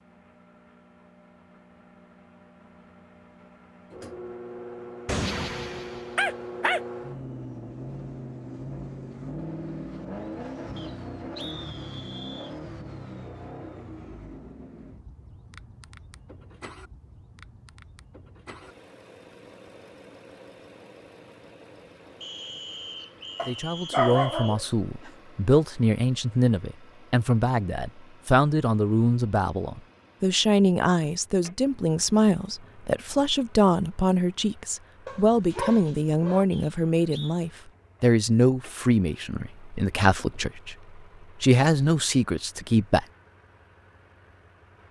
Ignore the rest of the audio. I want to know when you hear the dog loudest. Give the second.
24 s.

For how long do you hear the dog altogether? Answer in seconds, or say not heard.
5 s.